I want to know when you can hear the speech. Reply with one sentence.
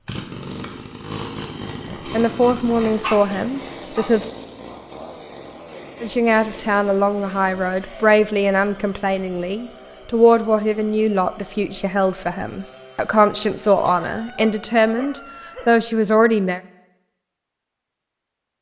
You can hear the speech from 2.1 to 4.3 s and from 6.0 to 16.6 s.